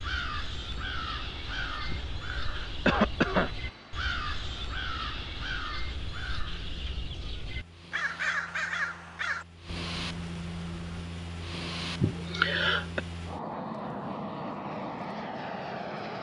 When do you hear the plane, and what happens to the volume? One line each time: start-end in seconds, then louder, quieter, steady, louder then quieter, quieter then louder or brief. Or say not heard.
0.0-16.1 louder.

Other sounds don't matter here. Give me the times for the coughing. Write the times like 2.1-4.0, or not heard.
1.9-3.5, 12.0-13.0.